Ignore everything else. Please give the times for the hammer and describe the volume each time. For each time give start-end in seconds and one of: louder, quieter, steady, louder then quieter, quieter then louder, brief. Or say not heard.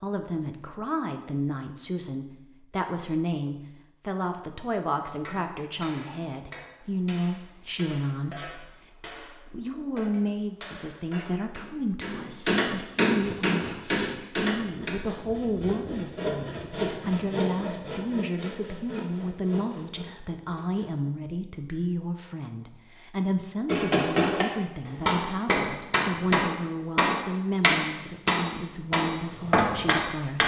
5.0-14.9 louder
23.6-30.4 steady.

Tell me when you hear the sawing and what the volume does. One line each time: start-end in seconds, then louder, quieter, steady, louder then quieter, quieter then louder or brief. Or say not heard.
13.1-20.9 louder then quieter.